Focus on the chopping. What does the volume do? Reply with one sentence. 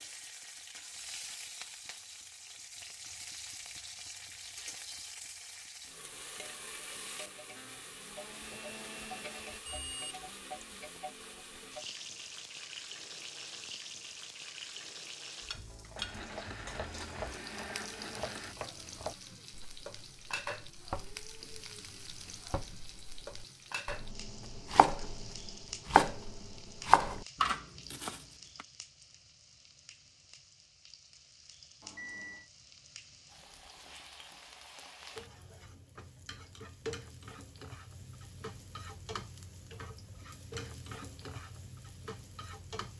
The volume of the chopping goes up.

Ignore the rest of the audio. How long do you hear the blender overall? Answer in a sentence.
The blender can be heard for 5 seconds in total.